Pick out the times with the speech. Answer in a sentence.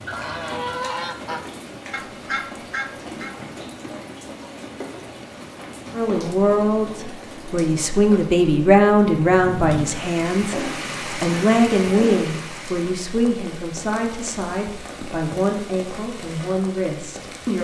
You can hear the speech from 5.9 to 17.6 s.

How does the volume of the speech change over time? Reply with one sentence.
The volume of the speech goes down.